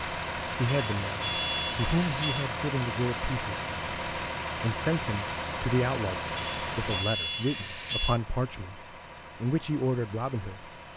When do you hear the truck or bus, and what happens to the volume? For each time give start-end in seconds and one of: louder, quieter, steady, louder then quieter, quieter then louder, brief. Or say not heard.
0.0-10.9 quieter.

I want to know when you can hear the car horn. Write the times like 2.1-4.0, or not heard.
not heard.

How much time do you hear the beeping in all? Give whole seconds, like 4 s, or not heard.
4 s.